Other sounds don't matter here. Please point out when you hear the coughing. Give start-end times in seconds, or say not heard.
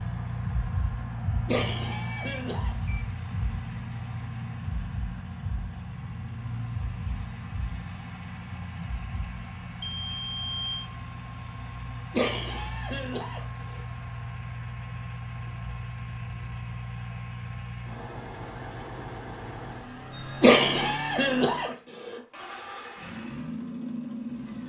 1.4-2.8, 12.1-13.8, 20.4-22.1.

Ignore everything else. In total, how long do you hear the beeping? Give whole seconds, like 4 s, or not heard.
3 s.